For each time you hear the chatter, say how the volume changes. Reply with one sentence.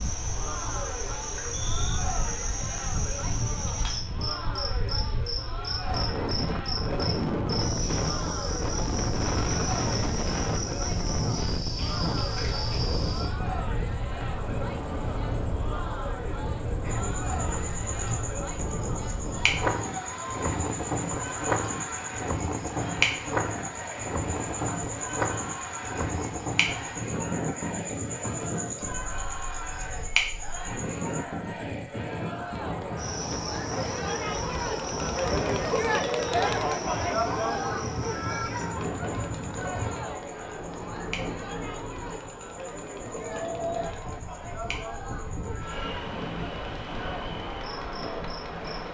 You can hear the chatter from 0.2 to 48.8 s, getting louder then quieter.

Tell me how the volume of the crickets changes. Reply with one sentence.
The volume of the crickets goes down.